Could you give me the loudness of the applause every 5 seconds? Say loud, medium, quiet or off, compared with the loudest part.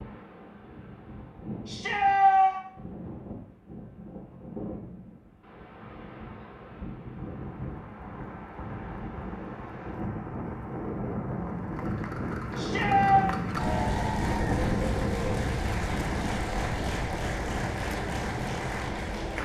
off, quiet, loud, loud.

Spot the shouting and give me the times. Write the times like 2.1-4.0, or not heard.
1.6-2.6, 12.6-13.3.